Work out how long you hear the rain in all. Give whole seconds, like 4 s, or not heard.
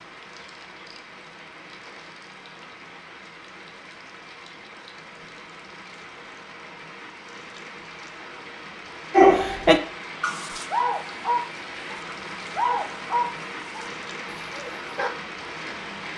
16 s.